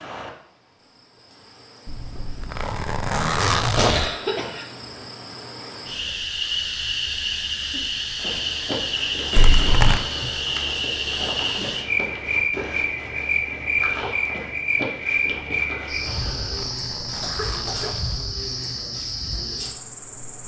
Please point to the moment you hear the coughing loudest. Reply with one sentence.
The volume of the coughing peaks at 4 seconds.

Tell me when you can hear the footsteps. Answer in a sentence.
You can hear the footsteps from 8.2 to 16.7 s.